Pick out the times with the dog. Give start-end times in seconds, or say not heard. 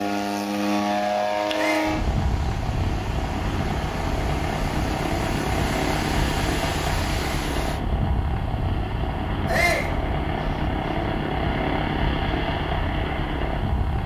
not heard.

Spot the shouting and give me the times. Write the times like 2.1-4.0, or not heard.
1.5-1.9, 9.4-9.9.